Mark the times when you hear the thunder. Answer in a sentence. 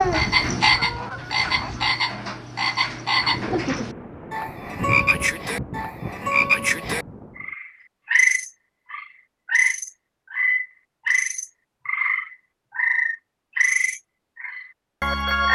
The thunder can be heard from 3.1 to 7.5 s.